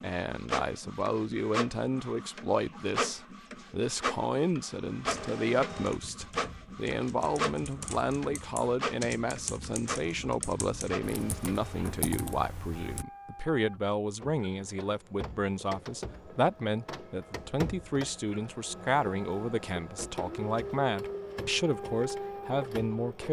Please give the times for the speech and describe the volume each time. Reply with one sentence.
The speech can be heard from 0.0 to 23.2 s, at a steady volume.